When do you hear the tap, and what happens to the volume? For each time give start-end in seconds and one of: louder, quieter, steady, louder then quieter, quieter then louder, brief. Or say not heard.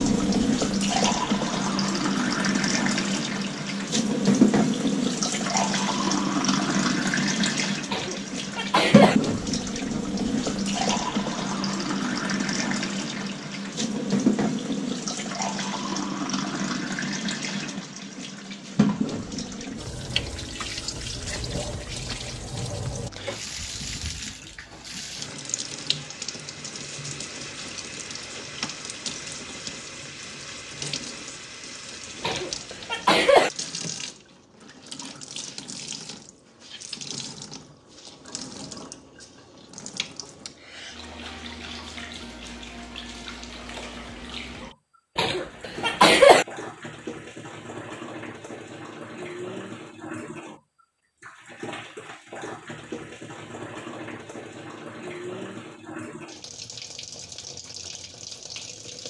0.0-59.0 quieter.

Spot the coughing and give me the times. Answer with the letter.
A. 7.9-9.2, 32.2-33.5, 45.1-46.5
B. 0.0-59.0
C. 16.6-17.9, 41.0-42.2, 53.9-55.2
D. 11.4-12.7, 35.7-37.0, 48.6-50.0
A.